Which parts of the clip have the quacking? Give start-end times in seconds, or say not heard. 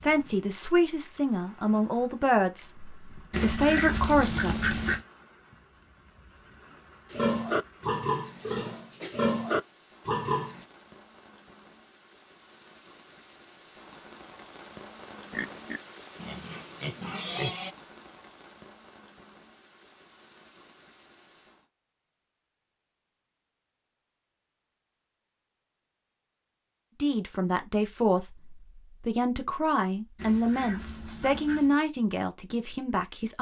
3.3-5.0, 30.1-31.8.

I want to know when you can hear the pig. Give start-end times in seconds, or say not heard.
7.1-10.7, 15.3-17.7.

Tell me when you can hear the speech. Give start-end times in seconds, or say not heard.
0.0-4.8, 27.0-33.3.